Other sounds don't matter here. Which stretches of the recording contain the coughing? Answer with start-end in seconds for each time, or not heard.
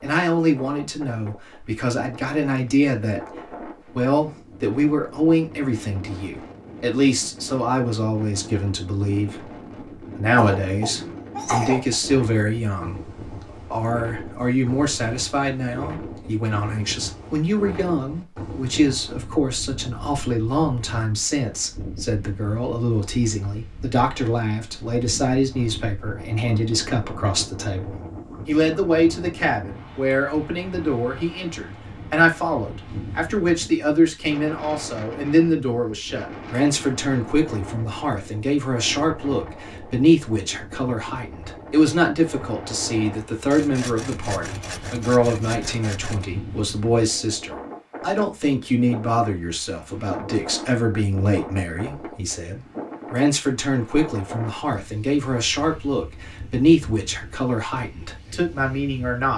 10.3-11.9.